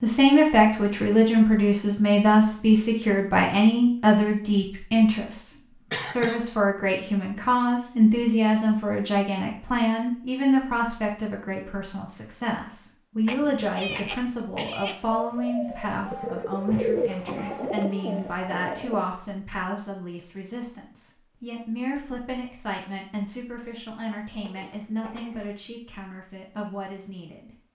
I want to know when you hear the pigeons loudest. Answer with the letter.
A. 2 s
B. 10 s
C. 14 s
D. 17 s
D.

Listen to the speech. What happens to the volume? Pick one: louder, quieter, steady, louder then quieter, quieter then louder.
quieter.